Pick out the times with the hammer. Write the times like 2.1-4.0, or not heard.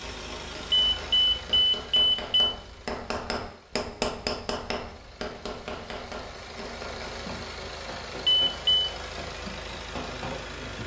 0.0-10.6.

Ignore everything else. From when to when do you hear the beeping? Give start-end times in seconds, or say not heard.
0.7-2.5, 8.2-8.9.